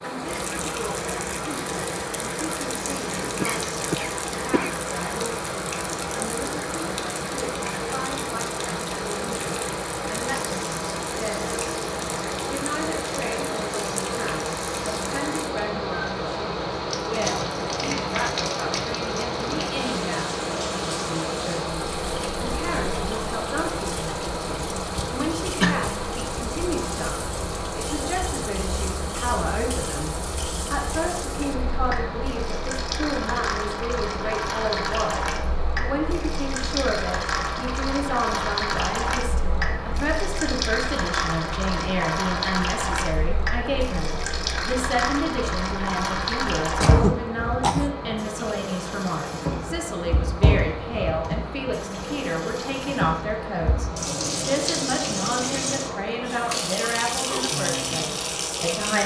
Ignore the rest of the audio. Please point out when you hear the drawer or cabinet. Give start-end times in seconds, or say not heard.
not heard.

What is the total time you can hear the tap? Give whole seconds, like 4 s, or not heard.
59 s.